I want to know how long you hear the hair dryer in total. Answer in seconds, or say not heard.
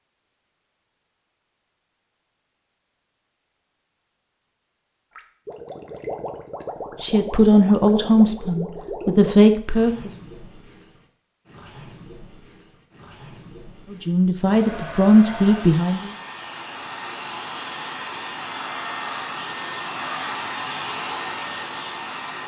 8 s.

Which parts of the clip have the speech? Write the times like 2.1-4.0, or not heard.
7.0-10.1, 13.9-16.1.